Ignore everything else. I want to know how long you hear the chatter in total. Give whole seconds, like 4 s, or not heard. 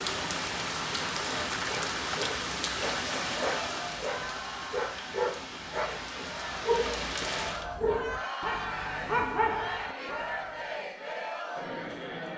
9 s.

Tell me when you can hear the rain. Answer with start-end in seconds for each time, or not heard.
0.0-7.7.